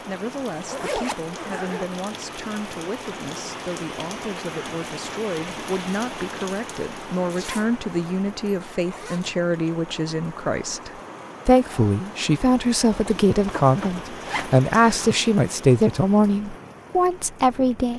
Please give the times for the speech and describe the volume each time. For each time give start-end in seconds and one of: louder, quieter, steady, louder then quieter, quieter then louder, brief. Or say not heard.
0.0-17.9 louder.